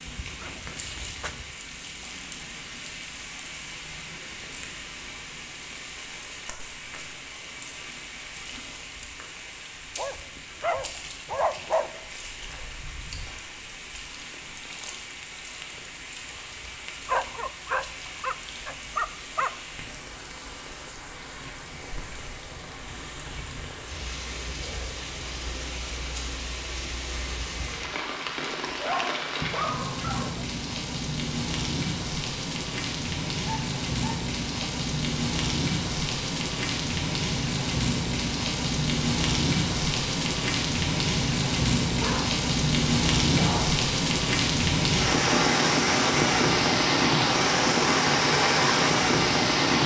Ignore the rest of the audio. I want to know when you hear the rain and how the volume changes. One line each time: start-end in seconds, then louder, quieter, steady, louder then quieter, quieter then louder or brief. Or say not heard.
0.0-49.8 louder.